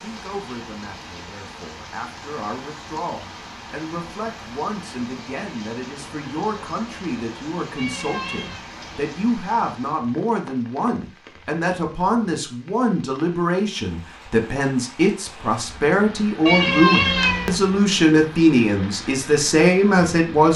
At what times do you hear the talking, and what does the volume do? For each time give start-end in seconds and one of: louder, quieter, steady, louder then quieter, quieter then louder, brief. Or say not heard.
0.0-20.5 louder.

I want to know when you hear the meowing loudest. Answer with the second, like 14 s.
17 s.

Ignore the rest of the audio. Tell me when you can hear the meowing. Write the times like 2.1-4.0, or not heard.
7.8-8.7, 16.4-17.6.